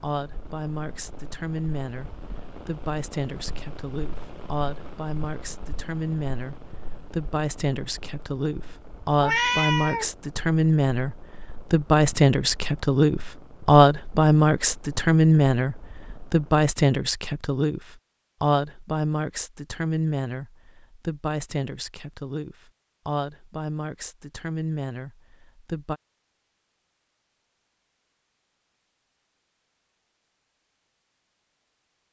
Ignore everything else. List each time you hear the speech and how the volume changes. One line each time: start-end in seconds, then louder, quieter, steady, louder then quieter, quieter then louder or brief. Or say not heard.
0.0-26.0 louder then quieter.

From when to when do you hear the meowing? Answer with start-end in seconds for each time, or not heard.
9.2-10.1.